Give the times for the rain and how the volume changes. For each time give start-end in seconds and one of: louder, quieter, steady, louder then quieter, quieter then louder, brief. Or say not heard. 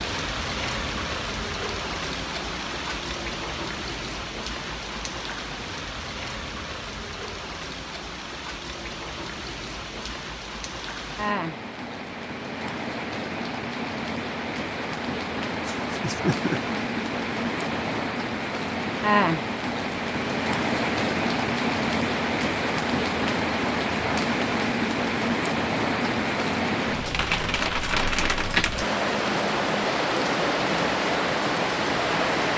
0.0-32.5 louder.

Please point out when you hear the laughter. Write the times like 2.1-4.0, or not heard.
15.7-16.8.